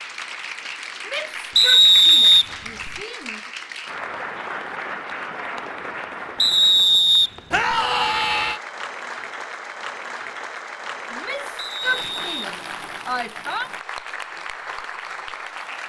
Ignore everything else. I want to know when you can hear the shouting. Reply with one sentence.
The shouting can be heard from 1.1 to 3.4 s, from 7.5 to 8.6 s and from 11.1 to 13.7 s.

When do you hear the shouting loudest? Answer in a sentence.
The loudest moment of the shouting is at 8 seconds.